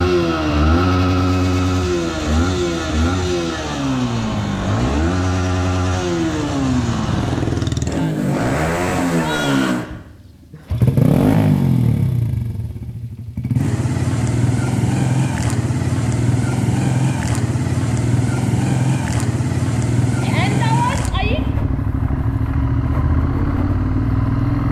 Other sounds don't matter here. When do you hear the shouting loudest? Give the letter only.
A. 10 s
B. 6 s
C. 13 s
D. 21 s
D.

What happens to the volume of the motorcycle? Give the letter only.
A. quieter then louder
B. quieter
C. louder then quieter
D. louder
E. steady
E.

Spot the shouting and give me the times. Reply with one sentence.
You can hear the shouting from 9.1 to 9.8 s and from 20.2 to 21.4 s.